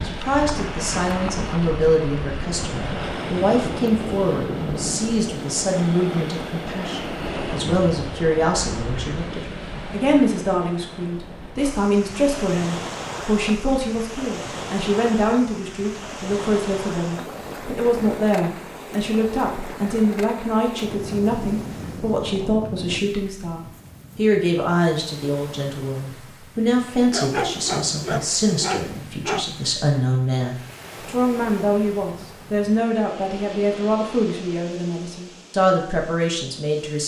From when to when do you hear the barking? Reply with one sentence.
The barking can be heard from 27.1 to 29.7 s.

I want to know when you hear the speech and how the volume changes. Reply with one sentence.
The speech can be heard from 0.0 to 37.0 s, at a steady volume.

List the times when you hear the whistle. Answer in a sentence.
You can't hear the whistle here.